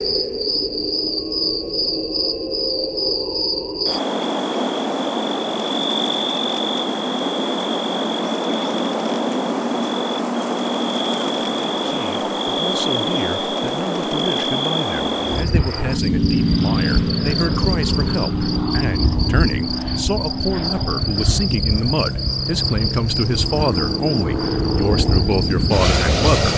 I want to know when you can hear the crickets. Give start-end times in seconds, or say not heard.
0.0-26.5.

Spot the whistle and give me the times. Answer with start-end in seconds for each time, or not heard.
not heard.